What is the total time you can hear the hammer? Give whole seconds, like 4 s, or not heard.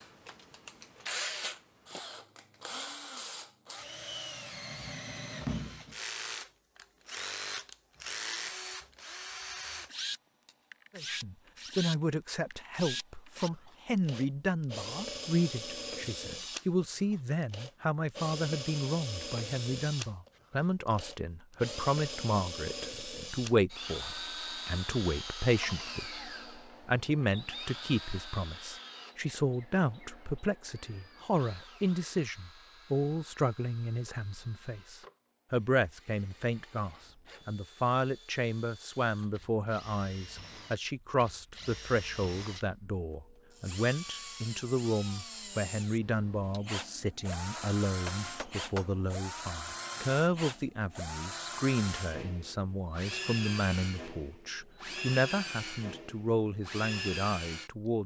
2 s.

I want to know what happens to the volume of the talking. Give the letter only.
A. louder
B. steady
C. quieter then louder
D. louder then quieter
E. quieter
B.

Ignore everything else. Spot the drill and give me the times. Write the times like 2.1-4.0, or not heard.
0.0-57.7.